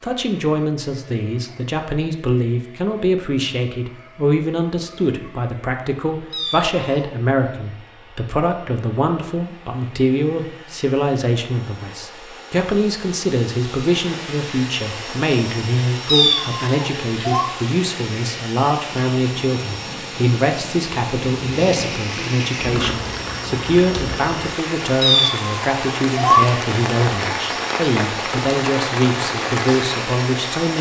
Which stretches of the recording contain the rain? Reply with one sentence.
You can hear the rain from 13.8 to 30.7 s.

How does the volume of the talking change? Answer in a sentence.
The loudness of the talking stays about the same.